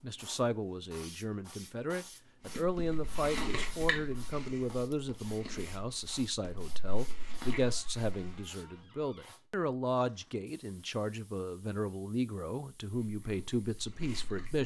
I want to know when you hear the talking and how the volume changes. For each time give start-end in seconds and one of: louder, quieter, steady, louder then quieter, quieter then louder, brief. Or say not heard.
0.0-14.6 steady.